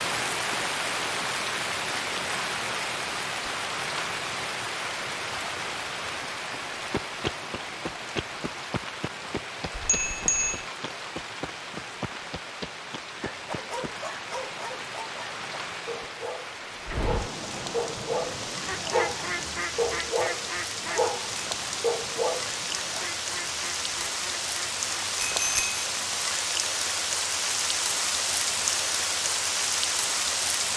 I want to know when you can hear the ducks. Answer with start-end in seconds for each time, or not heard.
16.9-26.4.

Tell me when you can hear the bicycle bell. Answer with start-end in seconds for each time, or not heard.
9.7-10.7, 25.1-25.8.